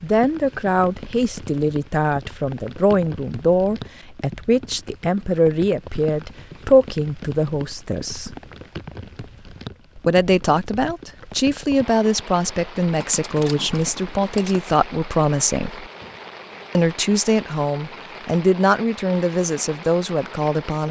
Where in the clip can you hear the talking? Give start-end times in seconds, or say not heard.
0.0-8.3, 9.9-15.8, 16.8-20.8.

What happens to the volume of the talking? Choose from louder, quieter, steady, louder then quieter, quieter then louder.
steady.